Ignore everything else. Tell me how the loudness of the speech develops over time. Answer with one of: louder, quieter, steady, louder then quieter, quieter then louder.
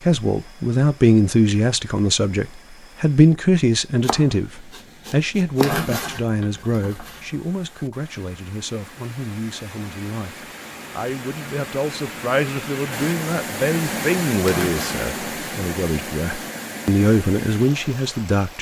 quieter then louder.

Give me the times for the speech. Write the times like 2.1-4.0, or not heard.
0.0-18.5.